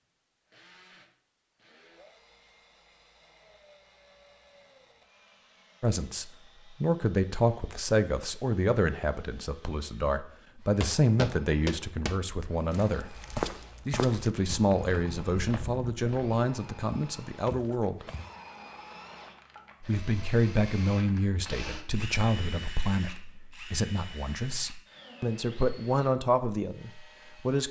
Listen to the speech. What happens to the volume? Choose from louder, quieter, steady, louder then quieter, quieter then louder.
steady.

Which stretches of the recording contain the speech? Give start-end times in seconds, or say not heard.
5.8-13.2, 13.8-18.1, 19.8-27.6.